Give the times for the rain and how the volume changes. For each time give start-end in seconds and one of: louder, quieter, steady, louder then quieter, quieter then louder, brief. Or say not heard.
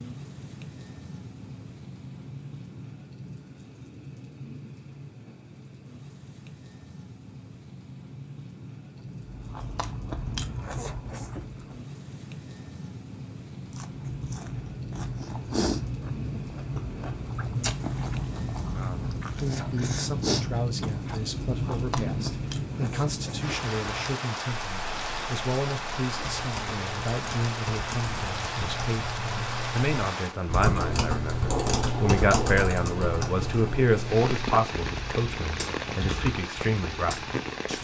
0.0-37.7 louder.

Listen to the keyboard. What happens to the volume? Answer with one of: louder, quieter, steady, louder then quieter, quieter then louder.
louder then quieter.